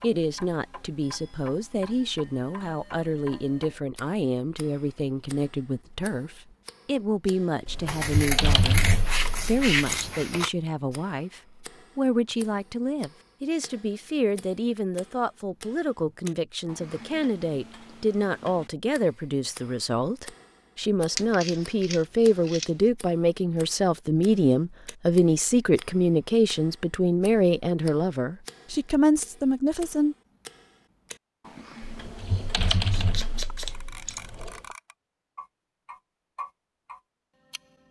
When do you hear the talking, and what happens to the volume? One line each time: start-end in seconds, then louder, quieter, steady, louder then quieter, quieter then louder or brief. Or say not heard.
0.0-30.1 louder.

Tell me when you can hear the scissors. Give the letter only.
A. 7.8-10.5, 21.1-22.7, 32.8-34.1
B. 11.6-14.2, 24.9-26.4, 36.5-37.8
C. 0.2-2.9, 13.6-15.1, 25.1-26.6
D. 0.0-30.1
A.